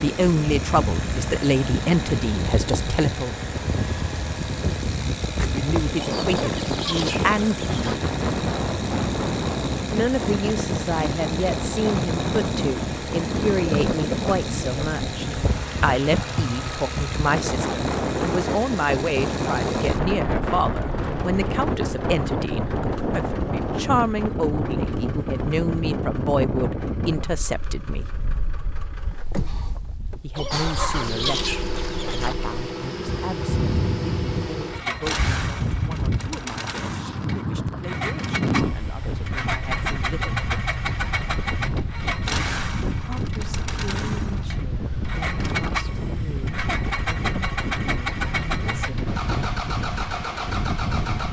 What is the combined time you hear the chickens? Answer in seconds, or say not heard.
4 s.